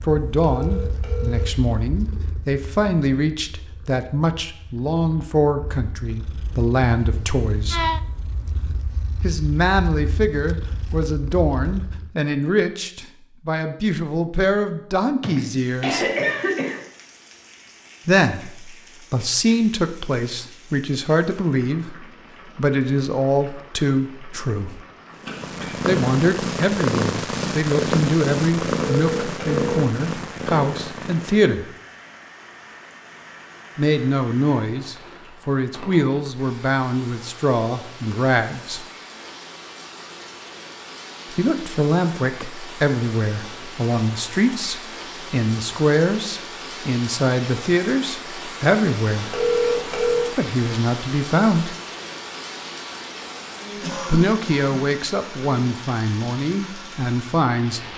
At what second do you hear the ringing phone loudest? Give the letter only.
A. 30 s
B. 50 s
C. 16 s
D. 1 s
B.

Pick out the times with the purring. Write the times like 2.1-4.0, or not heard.
0.0-12.2, 25.1-31.6.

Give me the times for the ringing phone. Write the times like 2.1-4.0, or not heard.
0.4-1.5, 28.8-29.9, 49.3-50.3.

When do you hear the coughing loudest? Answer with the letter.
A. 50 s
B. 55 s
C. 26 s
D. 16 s
D.